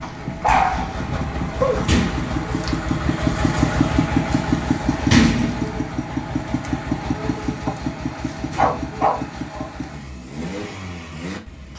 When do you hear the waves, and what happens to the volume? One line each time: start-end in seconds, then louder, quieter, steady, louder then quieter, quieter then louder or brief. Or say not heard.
not heard.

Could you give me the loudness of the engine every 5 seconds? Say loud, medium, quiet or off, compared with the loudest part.
loud, loud, medium.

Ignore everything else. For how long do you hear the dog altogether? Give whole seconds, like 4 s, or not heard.
4 s.